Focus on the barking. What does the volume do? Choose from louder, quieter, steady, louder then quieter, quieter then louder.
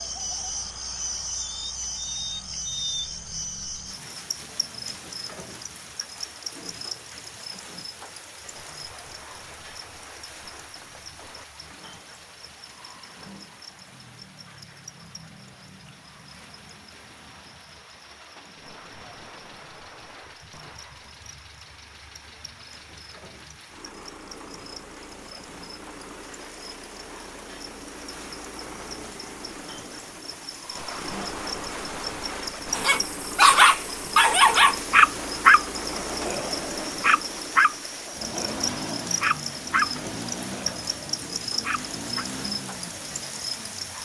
quieter.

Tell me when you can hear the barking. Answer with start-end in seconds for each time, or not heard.
32.8-42.2.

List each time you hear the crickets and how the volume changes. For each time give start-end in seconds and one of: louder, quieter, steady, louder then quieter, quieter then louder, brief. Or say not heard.
0.0-43.9 quieter then louder.